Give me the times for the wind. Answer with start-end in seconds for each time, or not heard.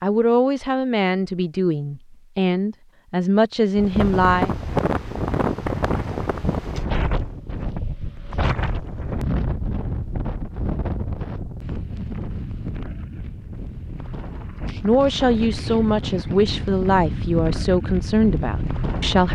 3.8-19.3.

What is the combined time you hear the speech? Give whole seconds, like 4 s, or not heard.
9 s.